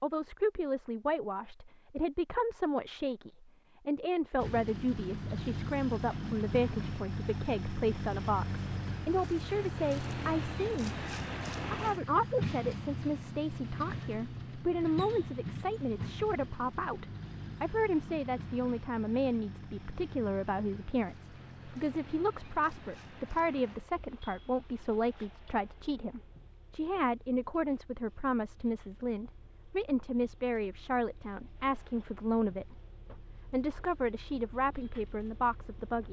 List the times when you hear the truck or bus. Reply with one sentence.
You can hear the truck or bus from 4.3 to 36.0 s.